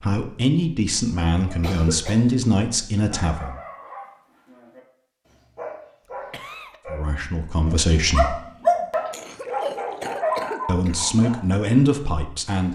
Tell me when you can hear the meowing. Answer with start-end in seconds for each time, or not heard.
not heard.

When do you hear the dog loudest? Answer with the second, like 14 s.
9 s.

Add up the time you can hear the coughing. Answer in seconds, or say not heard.
3 s.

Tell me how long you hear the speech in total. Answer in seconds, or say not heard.
7 s.